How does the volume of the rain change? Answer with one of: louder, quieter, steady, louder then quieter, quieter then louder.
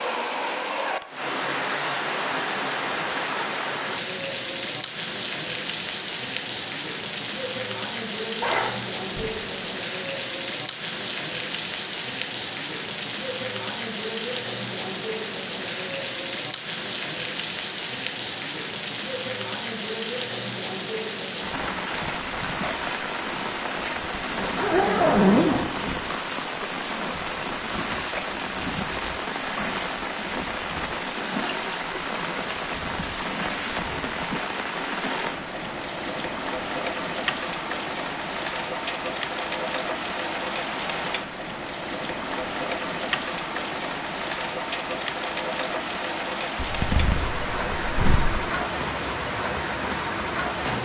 steady.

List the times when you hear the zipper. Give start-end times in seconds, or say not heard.
8.4-9.4, 24.1-26.1, 46.5-48.4.